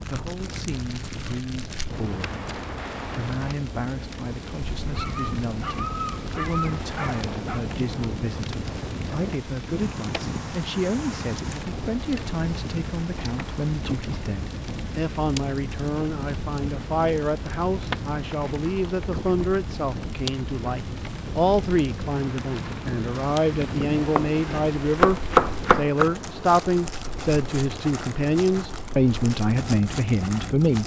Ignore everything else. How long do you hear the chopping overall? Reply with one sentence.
You can hear the chopping for 2 seconds altogether.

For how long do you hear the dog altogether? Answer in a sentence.
You can hear the dog for 3 seconds altogether.